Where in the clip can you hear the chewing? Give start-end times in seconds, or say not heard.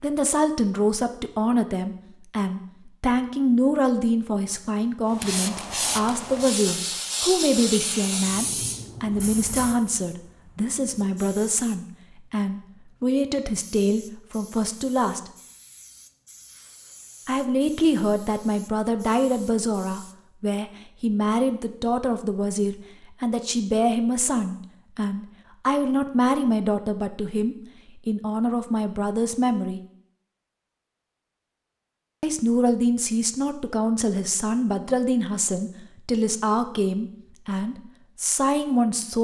not heard.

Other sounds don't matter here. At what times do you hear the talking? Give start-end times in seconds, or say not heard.
0.0-15.3, 17.2-29.8, 32.2-39.2.